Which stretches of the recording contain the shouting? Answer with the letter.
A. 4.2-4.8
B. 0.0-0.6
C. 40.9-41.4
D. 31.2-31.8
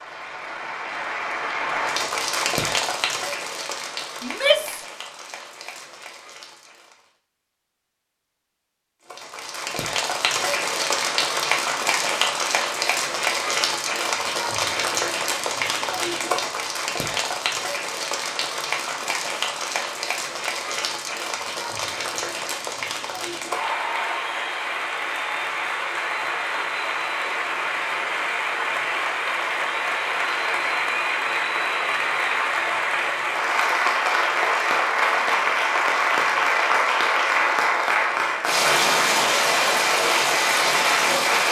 A.